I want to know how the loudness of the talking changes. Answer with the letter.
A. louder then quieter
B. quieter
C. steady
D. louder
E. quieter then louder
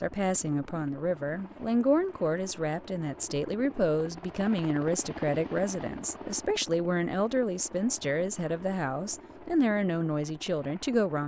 C.